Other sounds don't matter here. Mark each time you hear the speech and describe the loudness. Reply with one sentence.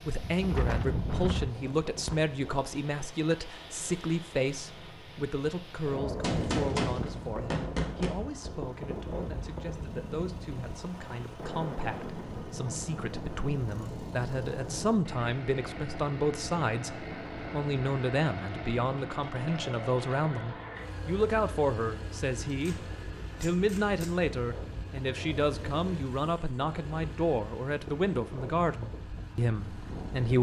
The speech can be heard from 0.1 to 22.8 s, getting quieter then louder; and from 23.4 to 30.3 s, at a steady volume.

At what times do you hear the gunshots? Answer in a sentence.
You can hear the gunshots from 6.2 to 8.1 s and from 22.4 to 24.2 s.